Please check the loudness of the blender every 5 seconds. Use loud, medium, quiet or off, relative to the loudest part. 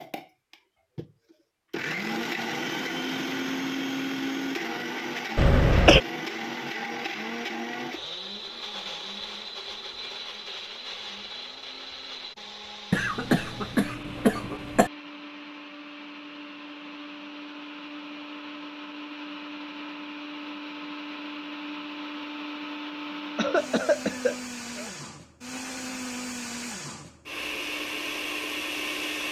loud, loud, medium, medium, medium, loud.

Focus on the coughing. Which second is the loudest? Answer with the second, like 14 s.
6 s.